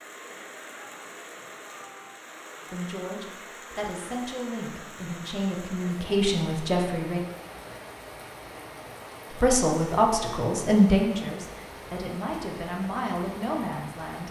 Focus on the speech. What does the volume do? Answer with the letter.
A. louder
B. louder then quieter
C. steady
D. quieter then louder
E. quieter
B.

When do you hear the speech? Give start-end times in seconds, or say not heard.
2.7-7.2, 9.4-14.2.